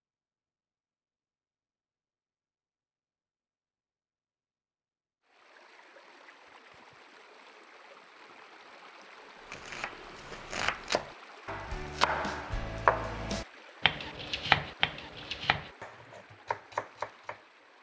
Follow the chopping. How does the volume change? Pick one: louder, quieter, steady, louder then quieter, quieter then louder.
louder then quieter.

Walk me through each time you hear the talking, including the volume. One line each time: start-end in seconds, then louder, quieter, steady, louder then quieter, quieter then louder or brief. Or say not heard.
not heard.